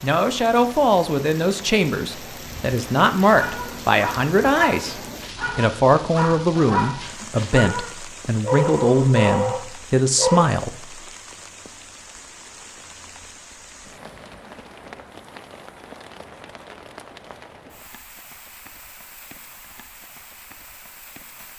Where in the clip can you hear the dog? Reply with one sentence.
You can hear the dog from 3.2 to 10.5 s.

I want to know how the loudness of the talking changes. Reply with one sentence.
The volume of the talking stays about the same.